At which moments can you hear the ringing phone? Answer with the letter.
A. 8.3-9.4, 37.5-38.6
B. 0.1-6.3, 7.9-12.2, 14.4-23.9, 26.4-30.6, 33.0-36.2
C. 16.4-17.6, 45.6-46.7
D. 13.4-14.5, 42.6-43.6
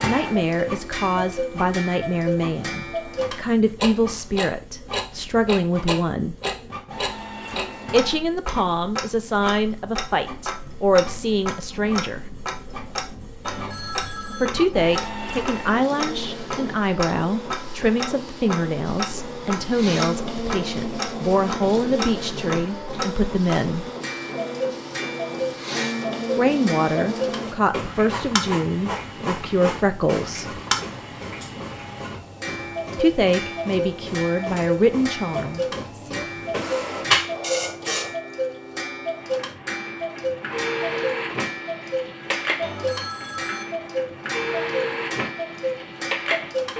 D.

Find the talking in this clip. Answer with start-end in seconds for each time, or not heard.
0.1-6.3, 7.9-12.2, 14.4-23.9, 26.4-30.6, 33.0-36.2.